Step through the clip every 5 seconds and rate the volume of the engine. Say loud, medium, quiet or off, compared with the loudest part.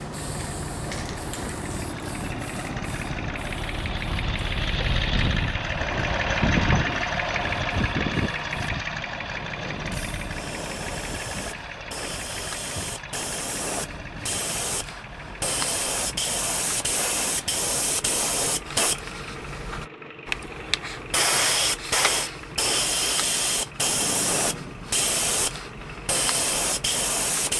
medium, loud, medium, quiet, quiet, quiet.